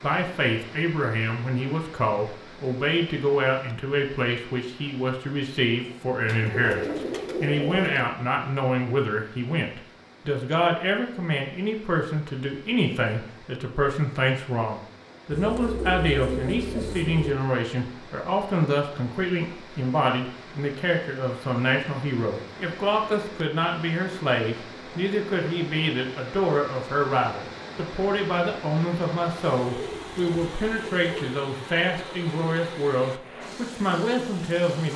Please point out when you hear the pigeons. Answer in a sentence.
The pigeons can be heard from 6.2 to 8.1 s, from 15.3 to 17.4 s and from 29.6 to 31.4 s.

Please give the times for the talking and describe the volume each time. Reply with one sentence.
The talking can be heard from 0.0 to 34.9 s, at a steady volume.